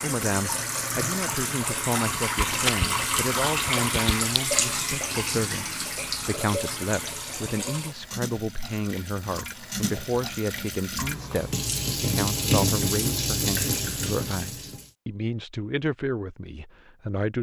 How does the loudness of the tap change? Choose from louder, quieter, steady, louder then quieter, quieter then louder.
quieter then louder.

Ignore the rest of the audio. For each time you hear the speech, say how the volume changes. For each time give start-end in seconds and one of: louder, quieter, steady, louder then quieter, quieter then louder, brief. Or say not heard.
0.0-17.3 steady.